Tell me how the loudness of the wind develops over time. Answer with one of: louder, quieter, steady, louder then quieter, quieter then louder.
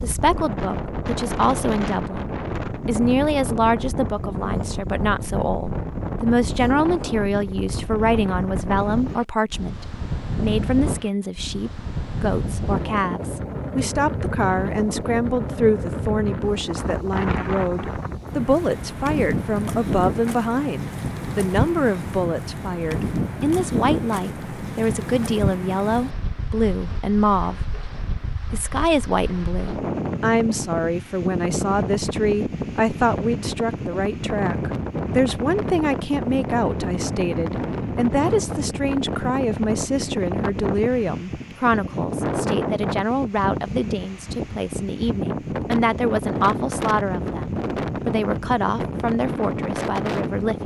steady.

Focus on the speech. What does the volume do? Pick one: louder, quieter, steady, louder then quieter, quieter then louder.
steady.